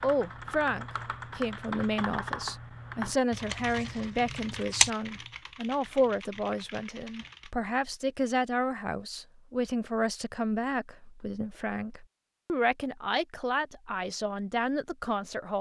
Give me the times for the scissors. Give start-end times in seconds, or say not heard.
3.3-4.9.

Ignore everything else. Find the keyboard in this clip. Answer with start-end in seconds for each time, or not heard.
0.0-7.5.